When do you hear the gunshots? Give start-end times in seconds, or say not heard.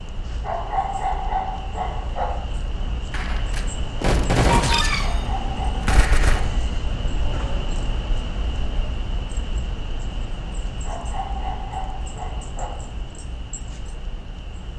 3.1-6.5.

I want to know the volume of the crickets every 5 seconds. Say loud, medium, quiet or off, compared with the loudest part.
loud, loud, medium.